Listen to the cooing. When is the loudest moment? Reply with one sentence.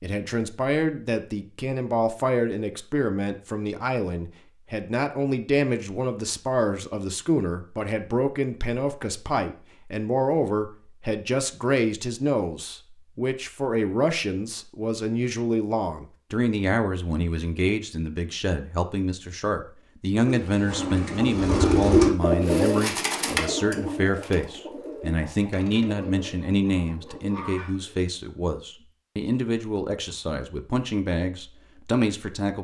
The volume of the cooing peaks at 22 seconds.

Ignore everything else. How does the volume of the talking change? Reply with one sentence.
The loudness of the talking stays about the same.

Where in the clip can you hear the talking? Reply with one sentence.
You can hear the talking from 0.0 to 32.5 s.